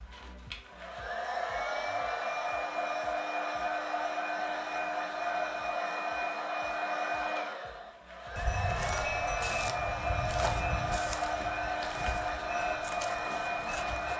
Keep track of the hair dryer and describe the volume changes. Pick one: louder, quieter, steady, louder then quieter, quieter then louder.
steady.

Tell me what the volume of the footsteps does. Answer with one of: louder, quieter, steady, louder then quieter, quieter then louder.
quieter.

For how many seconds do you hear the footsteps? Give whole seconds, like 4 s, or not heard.
6 s.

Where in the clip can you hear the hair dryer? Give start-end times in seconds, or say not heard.
0.0-14.1.